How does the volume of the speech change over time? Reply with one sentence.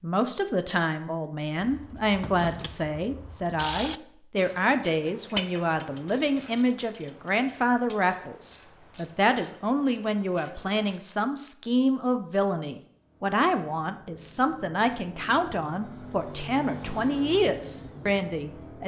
The loudness of the speech stays about the same.